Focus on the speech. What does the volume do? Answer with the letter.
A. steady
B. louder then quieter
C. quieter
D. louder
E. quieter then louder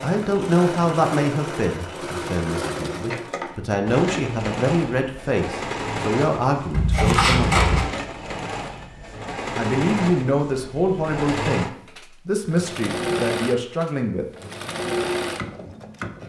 A.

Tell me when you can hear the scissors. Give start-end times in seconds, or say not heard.
6.7-7.8.